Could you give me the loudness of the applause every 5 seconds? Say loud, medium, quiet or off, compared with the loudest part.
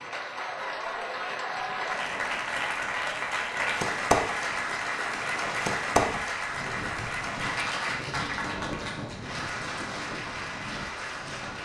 loud, loud, medium.